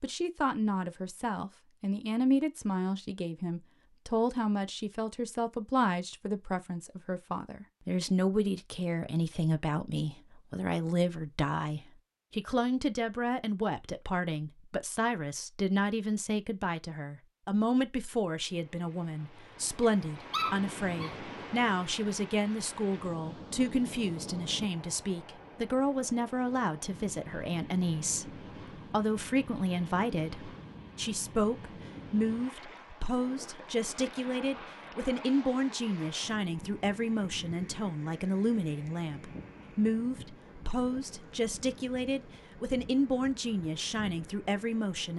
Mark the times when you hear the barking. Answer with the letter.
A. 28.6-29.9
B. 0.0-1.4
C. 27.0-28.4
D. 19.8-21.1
D.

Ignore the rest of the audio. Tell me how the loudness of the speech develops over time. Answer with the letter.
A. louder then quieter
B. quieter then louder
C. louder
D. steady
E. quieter
D.